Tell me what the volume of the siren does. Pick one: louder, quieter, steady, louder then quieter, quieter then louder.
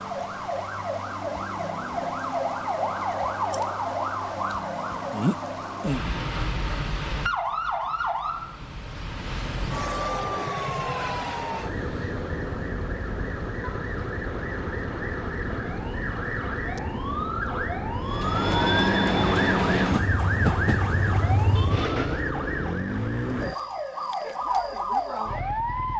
steady.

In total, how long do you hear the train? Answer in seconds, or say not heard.
4 s.